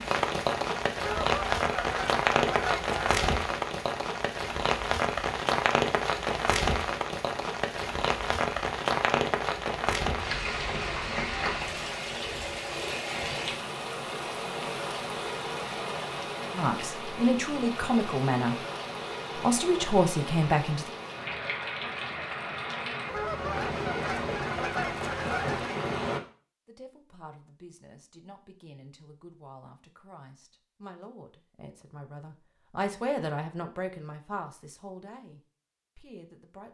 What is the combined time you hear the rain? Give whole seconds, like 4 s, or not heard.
26 s.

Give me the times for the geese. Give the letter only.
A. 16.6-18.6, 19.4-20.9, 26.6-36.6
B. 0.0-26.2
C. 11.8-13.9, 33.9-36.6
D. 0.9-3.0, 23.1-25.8
D.